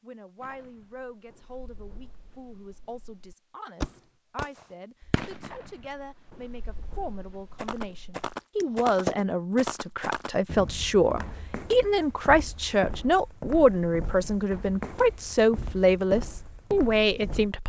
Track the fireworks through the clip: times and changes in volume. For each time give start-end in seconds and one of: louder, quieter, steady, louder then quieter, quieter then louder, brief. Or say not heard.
0.4-9.2 louder then quieter.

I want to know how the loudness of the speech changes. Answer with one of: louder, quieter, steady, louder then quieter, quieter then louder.
louder.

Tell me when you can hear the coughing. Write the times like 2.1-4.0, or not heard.
not heard.